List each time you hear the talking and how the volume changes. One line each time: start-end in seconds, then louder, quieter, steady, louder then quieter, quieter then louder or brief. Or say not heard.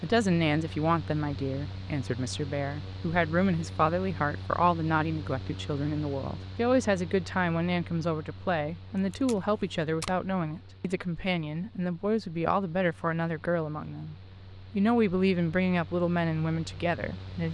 0.0-17.4 steady.